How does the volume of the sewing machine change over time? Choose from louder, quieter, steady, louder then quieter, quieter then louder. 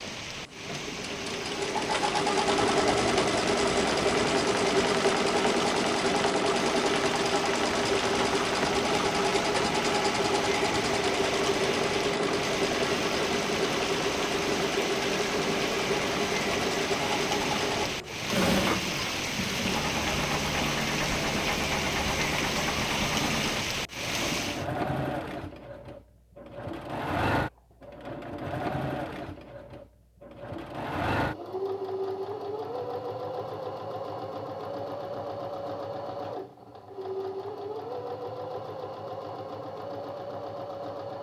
quieter.